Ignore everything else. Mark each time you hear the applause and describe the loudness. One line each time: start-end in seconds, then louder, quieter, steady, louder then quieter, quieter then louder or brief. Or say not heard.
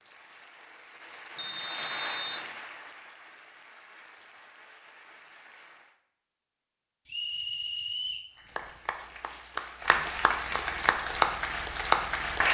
0.0-6.0 louder then quieter
8.3-12.4 louder.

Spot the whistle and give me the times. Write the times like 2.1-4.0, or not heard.
1.4-2.5, 7.0-8.3.